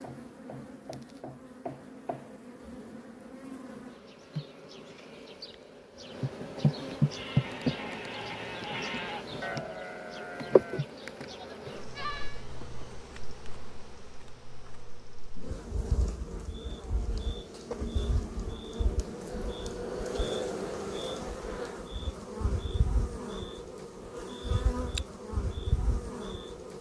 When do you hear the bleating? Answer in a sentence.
The bleating can be heard from 7.0 to 12.4 s.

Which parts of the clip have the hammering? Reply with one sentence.
You can't hear the hammering here.